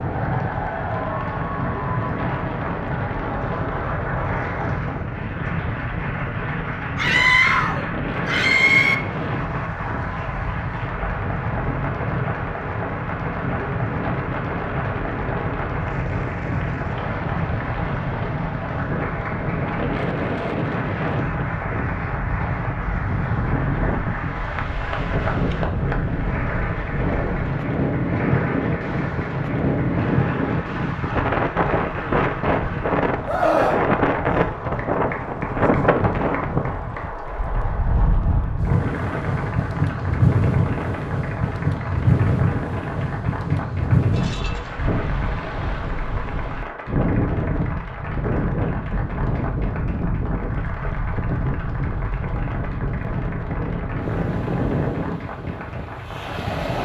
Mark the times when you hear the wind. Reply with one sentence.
The wind can be heard from 0.0 to 56.7 s.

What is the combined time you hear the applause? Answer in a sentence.
The applause can be heard for 57 seconds in total.